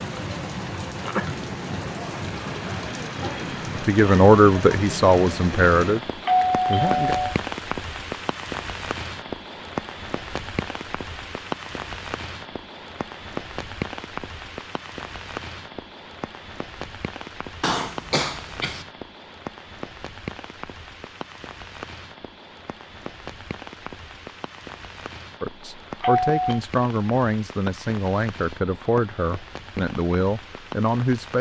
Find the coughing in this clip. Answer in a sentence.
You can hear the coughing from 17.6 to 18.9 s.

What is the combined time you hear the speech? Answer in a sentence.
You can hear the speech for 9 seconds altogether.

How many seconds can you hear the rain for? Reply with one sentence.
You can hear the rain for 31 seconds altogether.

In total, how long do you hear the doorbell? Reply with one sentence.
The doorbell can be heard for 2 seconds in total.